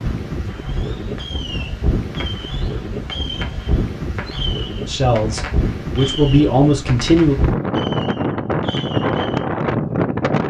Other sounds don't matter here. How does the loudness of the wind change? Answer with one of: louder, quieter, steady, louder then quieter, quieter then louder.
louder.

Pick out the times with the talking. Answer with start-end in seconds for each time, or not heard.
4.8-7.3.